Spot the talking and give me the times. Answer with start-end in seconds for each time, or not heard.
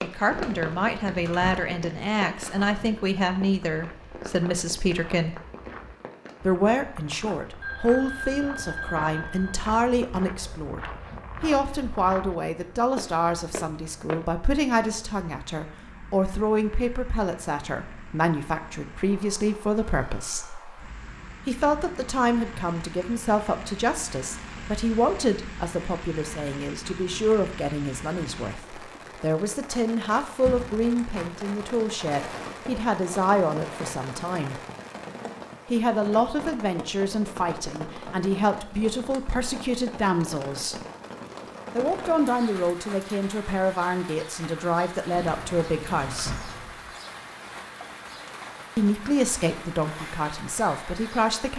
0.0-5.3, 6.4-20.5, 21.4-34.6, 35.7-40.8, 41.8-46.4, 48.8-51.5.